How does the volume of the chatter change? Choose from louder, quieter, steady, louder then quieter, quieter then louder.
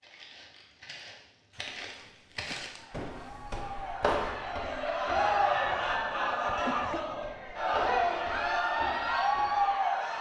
louder.